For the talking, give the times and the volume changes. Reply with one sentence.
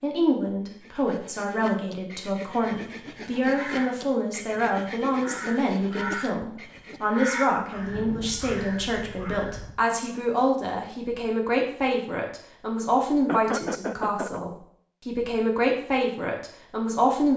You can hear the talking from 0.0 to 17.3 s, at a steady volume.